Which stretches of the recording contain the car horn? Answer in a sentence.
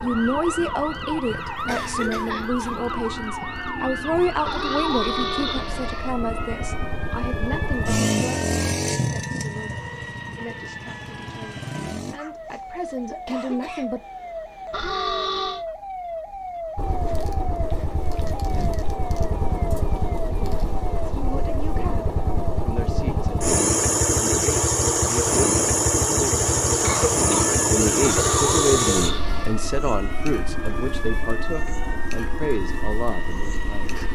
You can hear the car horn from 4.5 to 6.2 s, from 14.7 to 15.7 s and from 28.0 to 29.6 s.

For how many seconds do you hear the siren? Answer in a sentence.
The siren can be heard for 34 seconds in total.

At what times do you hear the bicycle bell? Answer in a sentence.
The bicycle bell can't be heard in this clip.